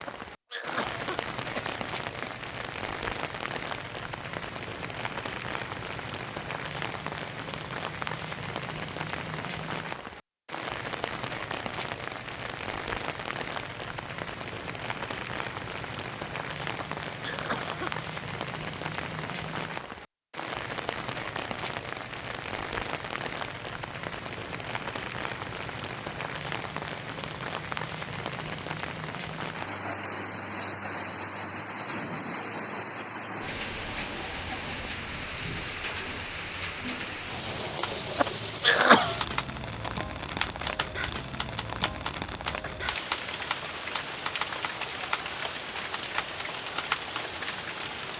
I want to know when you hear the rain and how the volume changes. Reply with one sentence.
You can hear the rain from 0.0 to 48.1 s, at a steady volume.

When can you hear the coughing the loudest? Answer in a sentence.
The volume of the coughing peaks at 39 seconds.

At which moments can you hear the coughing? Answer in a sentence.
You can hear the coughing from 0.1 to 2.3 s, from 16.8 to 17.9 s and from 38.1 to 39.2 s.